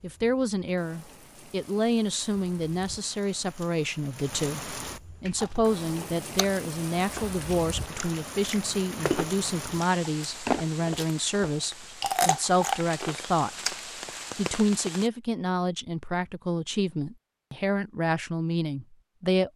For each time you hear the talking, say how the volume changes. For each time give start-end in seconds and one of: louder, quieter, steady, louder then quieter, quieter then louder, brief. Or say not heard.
0.0-13.5 steady
14.3-19.5 steady.